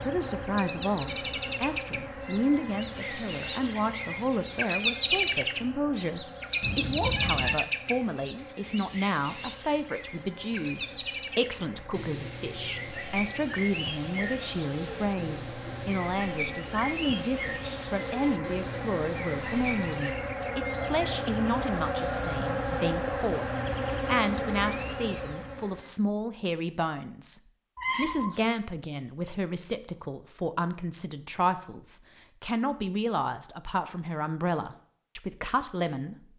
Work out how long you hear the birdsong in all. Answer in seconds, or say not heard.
20 s.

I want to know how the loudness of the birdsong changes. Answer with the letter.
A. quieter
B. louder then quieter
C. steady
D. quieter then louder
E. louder
B.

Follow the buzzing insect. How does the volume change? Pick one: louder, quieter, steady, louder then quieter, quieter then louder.
quieter then louder.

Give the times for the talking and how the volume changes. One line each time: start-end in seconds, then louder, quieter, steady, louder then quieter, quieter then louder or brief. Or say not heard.
0.0-36.3 steady.